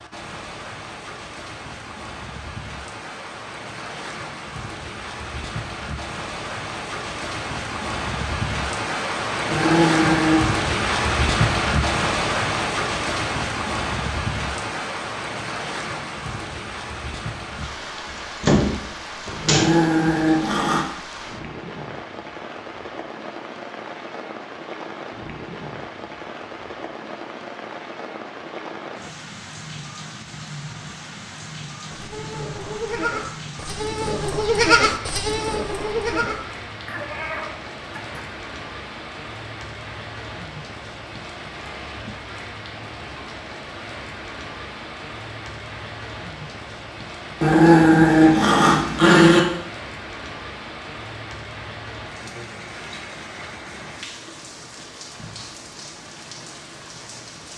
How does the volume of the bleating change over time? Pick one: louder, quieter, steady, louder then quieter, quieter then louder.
louder then quieter.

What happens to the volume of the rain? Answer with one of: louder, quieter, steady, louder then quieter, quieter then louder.
quieter.